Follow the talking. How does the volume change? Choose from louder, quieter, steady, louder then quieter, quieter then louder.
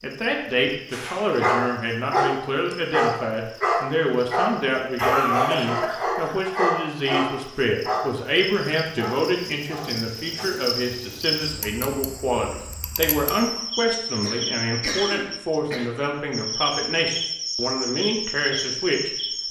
steady.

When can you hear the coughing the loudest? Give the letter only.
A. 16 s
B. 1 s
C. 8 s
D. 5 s
D.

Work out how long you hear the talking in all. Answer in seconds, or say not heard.
19 s.